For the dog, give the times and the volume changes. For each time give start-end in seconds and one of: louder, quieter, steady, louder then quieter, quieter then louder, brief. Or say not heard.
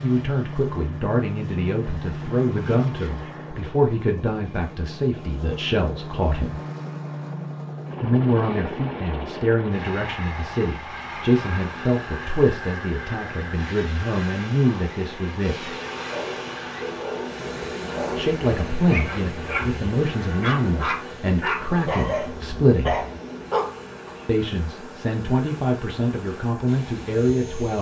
15.7-24.1 louder.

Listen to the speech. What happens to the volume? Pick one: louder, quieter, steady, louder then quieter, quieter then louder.
steady.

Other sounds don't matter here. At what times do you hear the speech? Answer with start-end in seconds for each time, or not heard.
0.0-6.6, 8.0-15.8, 18.1-23.0, 24.2-27.7.